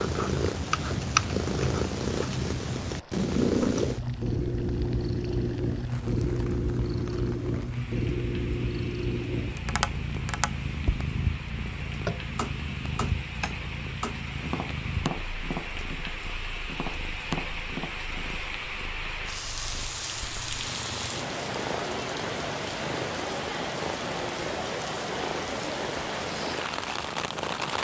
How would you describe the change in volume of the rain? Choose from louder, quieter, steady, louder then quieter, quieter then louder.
louder.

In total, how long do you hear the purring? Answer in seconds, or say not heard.
28 s.